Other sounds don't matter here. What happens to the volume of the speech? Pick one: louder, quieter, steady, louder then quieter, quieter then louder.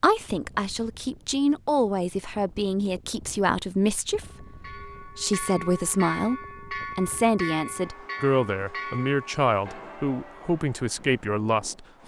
steady.